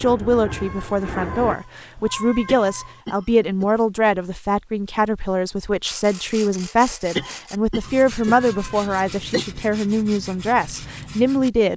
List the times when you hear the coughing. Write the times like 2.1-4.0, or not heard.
2.5-3.8, 7.2-9.4.